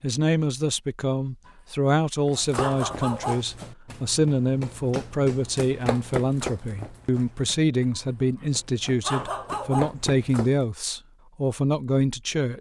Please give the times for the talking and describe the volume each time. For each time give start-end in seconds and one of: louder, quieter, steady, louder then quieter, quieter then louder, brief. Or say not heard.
0.0-12.5 steady.